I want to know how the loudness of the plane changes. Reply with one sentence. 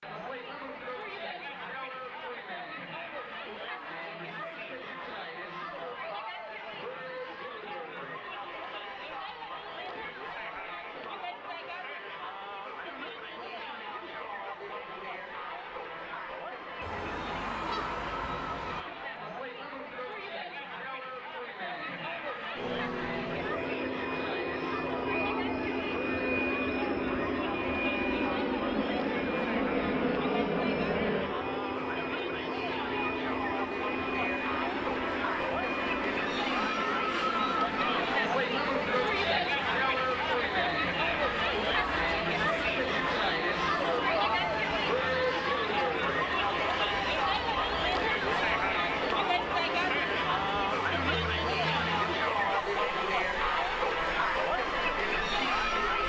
The volume of the plane goes down.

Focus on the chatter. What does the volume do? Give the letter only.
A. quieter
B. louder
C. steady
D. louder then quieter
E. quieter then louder
B.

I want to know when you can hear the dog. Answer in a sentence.
You can't hear the dog here.